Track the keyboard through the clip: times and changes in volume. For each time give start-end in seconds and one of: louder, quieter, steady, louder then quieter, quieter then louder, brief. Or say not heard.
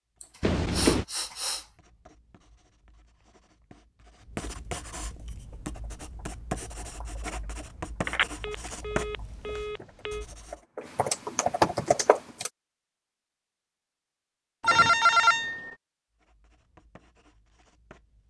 5.2-12.5 louder.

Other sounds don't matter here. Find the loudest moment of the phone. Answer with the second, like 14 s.
15 s.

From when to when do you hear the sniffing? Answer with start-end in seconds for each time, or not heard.
0.2-1.6.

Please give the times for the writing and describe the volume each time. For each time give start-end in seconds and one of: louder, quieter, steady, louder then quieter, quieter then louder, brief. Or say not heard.
0.1-10.6 louder
16.1-18.2 brief.